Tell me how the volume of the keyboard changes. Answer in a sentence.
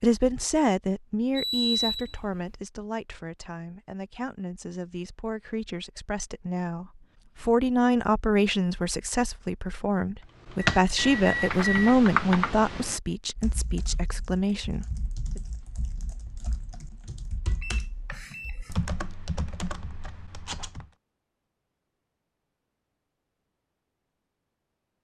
The volume of the keyboard goes down, then up.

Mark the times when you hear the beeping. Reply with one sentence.
The beeping can be heard from 1.4 to 2.5 s, from 10.8 to 12.0 s and from 17.4 to 18.8 s.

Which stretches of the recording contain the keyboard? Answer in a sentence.
You can hear the keyboard from 10.3 to 20.9 s.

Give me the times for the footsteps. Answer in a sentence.
The footsteps can't be heard in this clip.